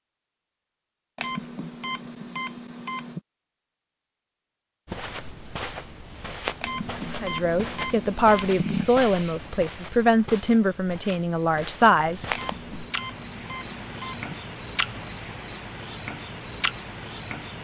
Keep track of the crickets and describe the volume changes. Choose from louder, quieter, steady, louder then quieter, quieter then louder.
quieter then louder.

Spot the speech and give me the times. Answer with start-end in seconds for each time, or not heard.
7.2-12.2.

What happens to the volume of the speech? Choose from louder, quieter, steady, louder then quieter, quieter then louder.
steady.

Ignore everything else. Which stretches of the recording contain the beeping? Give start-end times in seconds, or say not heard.
1.1-3.2, 6.6-8.9, 12.3-14.3.